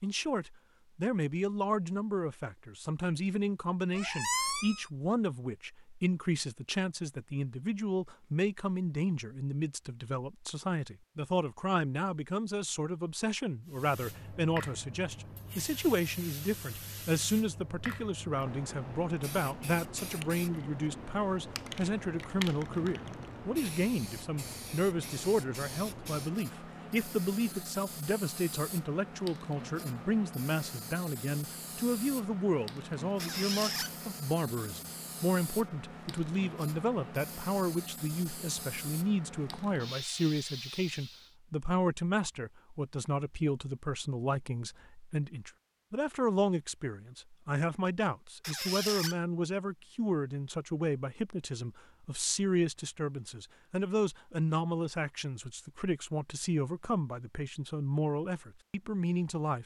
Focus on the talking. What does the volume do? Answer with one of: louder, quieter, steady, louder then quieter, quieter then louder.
steady.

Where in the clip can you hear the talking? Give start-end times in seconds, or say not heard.
0.0-59.6.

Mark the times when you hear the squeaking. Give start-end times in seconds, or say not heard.
3.9-4.8, 33.2-33.9, 48.4-49.1.